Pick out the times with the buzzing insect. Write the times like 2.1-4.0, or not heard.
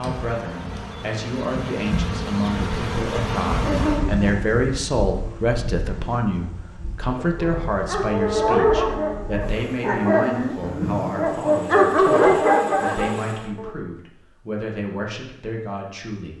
0.0-13.5.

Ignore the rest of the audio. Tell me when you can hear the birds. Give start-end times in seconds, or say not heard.
not heard.